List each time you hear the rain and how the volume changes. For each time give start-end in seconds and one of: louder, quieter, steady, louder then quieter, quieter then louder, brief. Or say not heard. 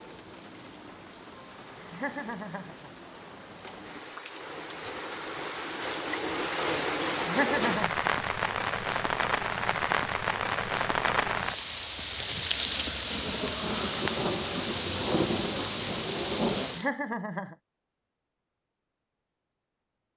0.0-16.9 louder.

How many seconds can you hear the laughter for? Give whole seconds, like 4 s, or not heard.
3 s.